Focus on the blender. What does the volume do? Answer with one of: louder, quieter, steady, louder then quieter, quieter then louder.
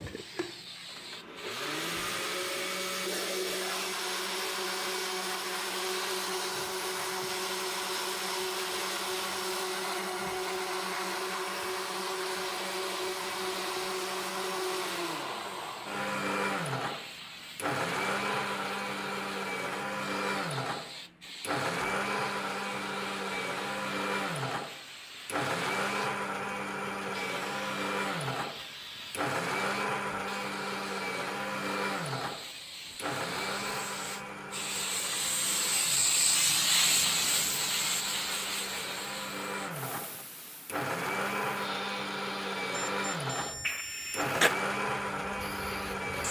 steady.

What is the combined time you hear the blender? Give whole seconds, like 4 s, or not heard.
46 s.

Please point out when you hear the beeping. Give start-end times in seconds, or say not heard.
42.7-44.6.